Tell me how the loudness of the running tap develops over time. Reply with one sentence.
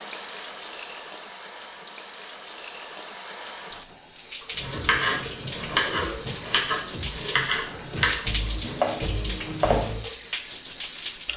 The volume of the running tap goes up.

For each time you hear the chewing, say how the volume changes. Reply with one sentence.
You can't hear the chewing here.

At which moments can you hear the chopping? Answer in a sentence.
The chopping can be heard from 4.5 to 10.0 s.